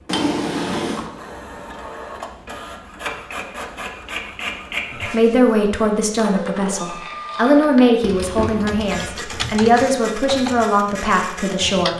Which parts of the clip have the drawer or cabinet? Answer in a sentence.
You can hear the drawer or cabinet from 0.1 to 1.1 s and from 8.0 to 9.7 s.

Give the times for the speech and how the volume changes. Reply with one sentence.
The speech can be heard from 5.0 to 11.9 s, at a steady volume.